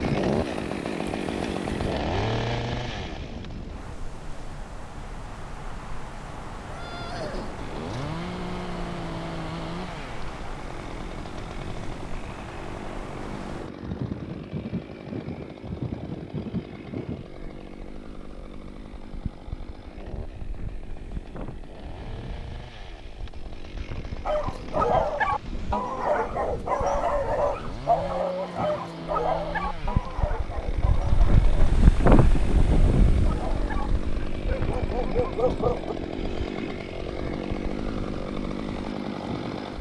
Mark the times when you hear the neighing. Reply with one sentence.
You can hear the neighing from 6.7 to 8.2 s.